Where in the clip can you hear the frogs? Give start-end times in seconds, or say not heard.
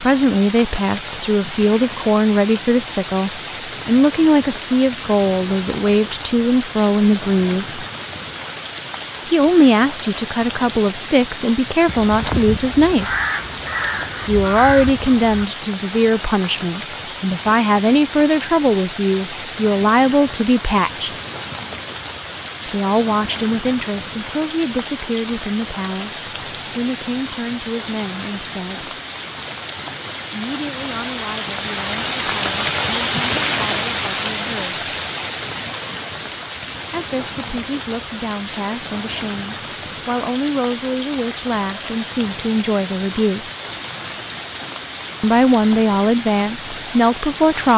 not heard.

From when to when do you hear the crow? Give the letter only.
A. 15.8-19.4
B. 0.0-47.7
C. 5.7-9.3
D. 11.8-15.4
D.